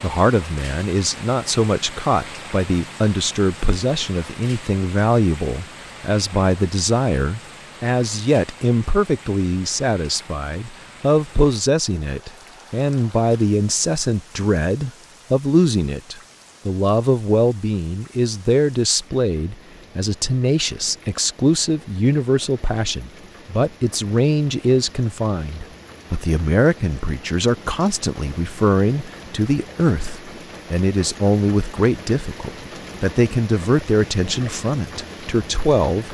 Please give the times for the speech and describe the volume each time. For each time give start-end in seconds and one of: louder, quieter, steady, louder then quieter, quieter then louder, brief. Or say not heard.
0.0-36.0 steady.